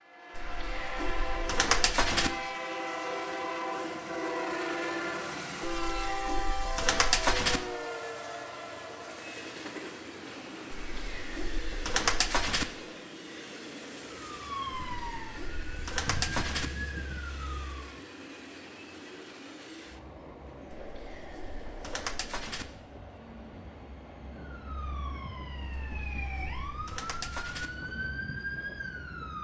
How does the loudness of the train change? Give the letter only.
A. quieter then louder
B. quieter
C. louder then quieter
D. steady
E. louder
B.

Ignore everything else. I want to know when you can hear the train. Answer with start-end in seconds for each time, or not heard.
0.0-29.3.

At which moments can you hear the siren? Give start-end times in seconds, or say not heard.
14.2-18.1, 24.4-29.3.